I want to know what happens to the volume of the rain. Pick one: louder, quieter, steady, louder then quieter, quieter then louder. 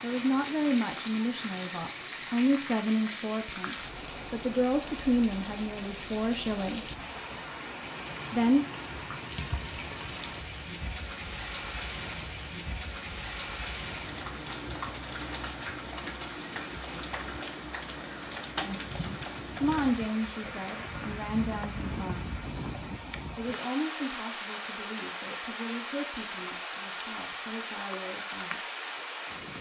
steady.